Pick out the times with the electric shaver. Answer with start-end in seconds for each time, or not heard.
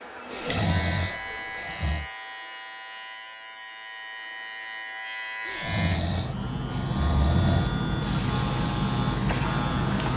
0.0-10.1.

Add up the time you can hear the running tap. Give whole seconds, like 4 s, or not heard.
4 s.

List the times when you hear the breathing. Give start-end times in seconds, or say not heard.
0.3-2.0, 5.5-7.8.